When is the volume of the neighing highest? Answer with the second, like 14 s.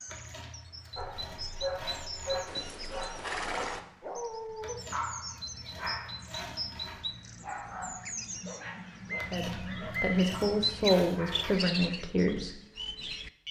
3 s.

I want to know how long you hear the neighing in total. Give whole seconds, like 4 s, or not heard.
2 s.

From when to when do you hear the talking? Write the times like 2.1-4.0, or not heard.
9.3-12.6.